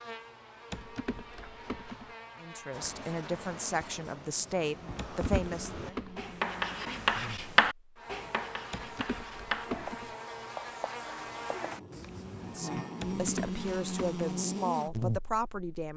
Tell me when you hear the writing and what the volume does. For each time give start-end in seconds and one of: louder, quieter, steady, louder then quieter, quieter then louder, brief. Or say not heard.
2.7-12.6 louder then quieter.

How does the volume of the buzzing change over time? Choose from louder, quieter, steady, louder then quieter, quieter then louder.
louder.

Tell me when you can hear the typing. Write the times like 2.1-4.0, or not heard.
0.7-2.1, 5.0-6.4, 8.7-10.2, 13.0-14.2.